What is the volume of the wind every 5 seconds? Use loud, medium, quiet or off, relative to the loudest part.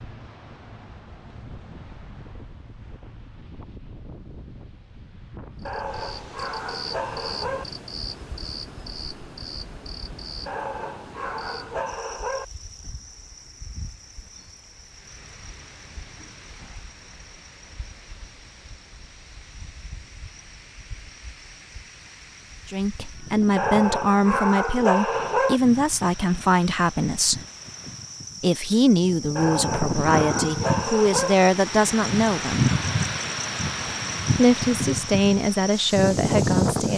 quiet, quiet, quiet, quiet, quiet, medium, loud, loud.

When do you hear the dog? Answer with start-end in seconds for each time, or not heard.
5.7-7.7, 10.4-12.4, 23.6-25.6, 29.4-31.4.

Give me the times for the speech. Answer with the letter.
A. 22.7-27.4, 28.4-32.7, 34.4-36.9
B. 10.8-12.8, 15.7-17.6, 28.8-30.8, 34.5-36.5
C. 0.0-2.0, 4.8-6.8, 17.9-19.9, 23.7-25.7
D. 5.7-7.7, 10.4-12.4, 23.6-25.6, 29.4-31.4
A.